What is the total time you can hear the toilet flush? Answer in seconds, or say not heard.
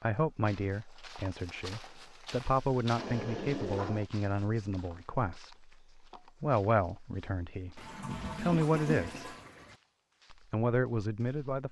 3 s.